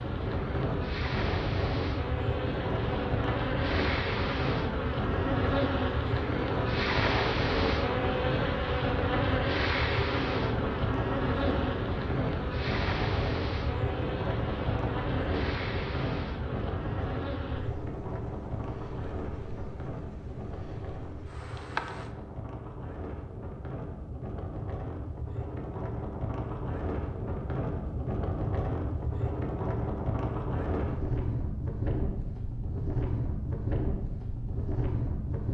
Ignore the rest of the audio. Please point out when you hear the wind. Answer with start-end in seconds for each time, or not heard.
0.0-35.4.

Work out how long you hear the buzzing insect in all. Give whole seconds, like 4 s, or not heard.
22 s.